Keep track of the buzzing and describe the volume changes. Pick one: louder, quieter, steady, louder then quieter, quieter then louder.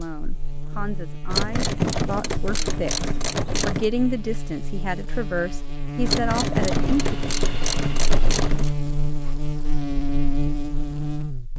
louder.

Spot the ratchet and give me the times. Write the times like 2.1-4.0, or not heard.
1.3-3.9, 6.0-8.7.